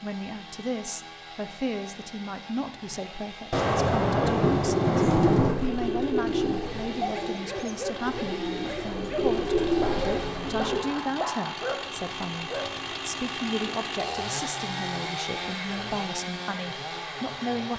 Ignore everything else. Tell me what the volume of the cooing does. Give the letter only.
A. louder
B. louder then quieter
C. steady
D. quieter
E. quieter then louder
E.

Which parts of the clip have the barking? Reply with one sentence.
The barking can be heard from 7.0 to 12.7 s.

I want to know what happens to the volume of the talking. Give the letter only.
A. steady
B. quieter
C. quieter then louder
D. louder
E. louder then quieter
A.